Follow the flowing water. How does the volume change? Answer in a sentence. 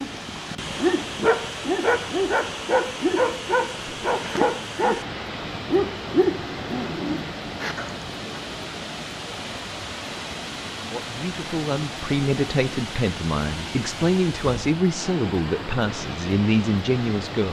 The volume of the flowing water stays about the same.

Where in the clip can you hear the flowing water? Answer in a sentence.
You can hear the flowing water from 0.0 to 17.4 s.